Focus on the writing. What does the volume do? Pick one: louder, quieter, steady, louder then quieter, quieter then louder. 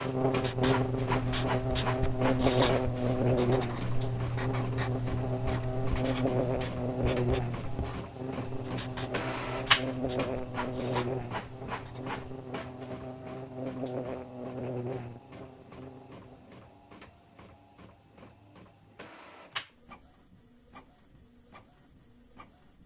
quieter.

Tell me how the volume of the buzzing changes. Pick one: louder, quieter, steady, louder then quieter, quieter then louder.
quieter.